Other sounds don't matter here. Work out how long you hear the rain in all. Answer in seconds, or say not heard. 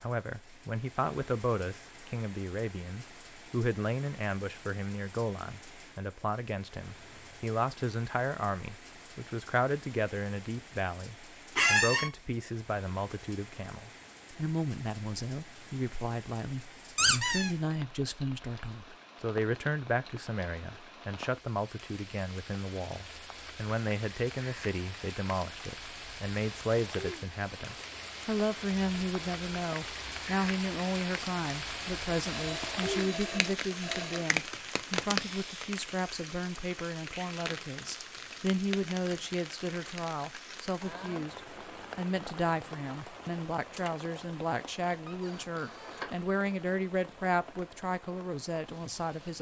49 s.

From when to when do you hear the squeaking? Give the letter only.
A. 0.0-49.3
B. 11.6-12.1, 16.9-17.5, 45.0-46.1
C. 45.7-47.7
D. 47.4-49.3
B.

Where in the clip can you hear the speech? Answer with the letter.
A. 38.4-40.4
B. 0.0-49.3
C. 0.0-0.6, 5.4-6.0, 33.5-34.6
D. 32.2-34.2
B.